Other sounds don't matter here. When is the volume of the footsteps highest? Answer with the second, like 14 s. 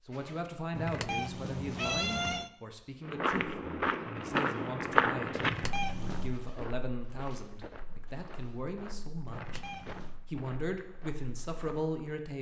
5 s.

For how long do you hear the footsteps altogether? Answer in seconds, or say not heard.
9 s.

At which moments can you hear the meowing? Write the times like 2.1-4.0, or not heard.
0.7-2.5, 5.3-6.3, 9.2-10.2.